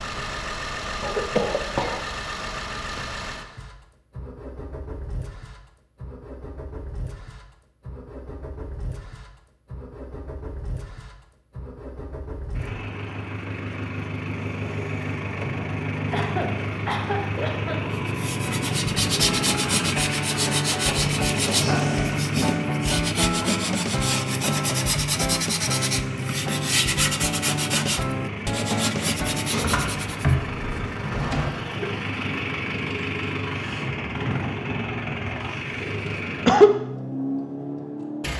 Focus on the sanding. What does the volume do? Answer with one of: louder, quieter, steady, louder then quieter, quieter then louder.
steady.